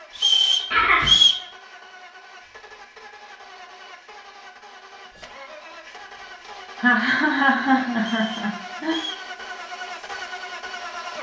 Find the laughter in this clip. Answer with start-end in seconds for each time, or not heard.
0.7-1.2, 6.8-8.9.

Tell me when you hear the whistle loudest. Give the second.
1 s.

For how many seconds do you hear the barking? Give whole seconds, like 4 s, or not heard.
not heard.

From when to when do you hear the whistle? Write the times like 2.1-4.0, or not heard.
0.1-1.4, 8.0-9.2.